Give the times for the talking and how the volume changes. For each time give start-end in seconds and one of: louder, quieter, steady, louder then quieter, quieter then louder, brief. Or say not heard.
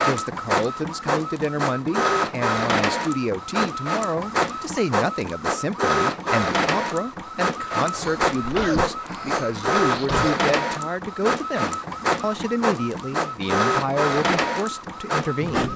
0.0-15.7 steady.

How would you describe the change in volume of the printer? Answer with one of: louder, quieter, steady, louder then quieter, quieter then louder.
steady.